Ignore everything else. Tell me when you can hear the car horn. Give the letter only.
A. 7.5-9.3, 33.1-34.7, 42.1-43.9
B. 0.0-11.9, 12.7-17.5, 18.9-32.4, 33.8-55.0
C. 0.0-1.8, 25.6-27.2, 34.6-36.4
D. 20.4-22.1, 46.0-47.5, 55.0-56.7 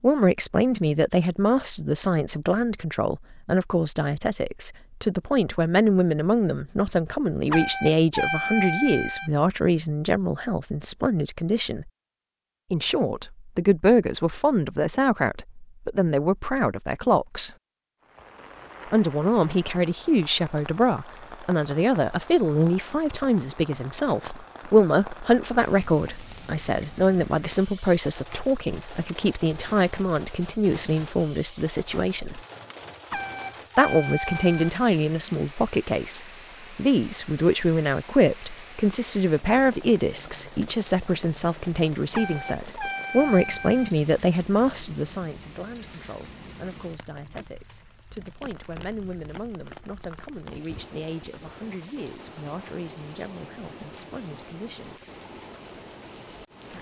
A.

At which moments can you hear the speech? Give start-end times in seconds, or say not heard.
0.0-11.9, 12.7-17.5, 18.9-32.4, 33.8-55.0.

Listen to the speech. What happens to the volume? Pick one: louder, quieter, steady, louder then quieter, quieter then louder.
quieter.